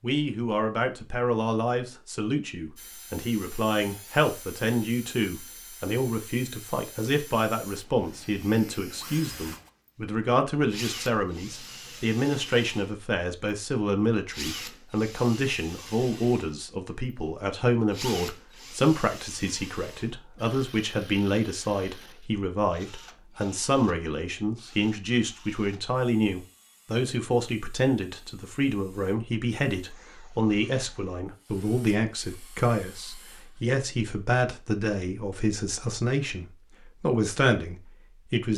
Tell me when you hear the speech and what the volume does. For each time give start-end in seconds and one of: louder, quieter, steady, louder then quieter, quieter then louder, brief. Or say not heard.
0.0-38.5 steady.